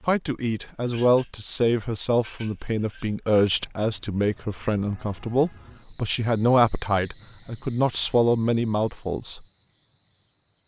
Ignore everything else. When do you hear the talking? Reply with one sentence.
You can hear the talking from 0.1 to 9.4 s.